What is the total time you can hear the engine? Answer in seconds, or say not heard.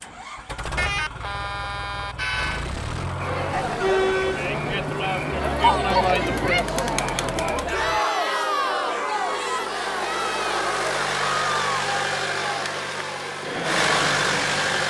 15 s.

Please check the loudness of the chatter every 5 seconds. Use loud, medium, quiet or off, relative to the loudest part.
loud, loud, medium.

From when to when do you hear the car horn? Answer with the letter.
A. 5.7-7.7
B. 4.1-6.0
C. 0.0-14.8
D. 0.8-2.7
D.